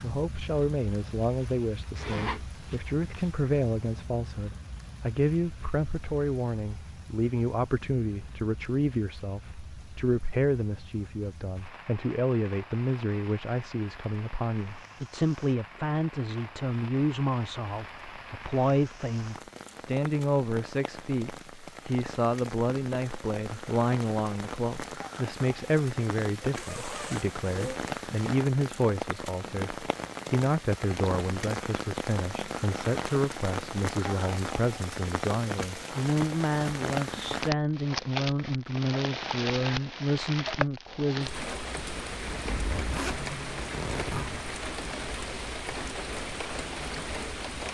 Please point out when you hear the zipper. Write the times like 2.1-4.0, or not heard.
1.9-3.3, 26.6-27.8, 42.3-44.4.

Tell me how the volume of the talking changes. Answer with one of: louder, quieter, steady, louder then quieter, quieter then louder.
steady.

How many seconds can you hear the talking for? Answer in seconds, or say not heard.
41 s.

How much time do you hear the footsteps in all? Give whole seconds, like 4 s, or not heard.
not heard.